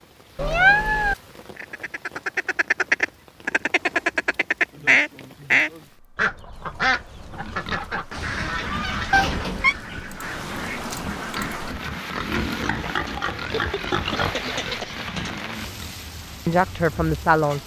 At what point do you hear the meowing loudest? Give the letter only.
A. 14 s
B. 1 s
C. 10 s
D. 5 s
B.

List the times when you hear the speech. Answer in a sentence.
You can hear the speech from 16.4 to 17.6 s.